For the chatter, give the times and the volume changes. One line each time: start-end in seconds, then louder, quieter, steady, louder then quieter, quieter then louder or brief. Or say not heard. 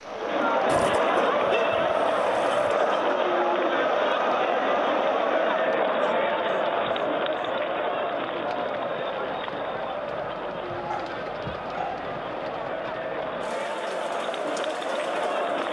0.0-15.6 quieter.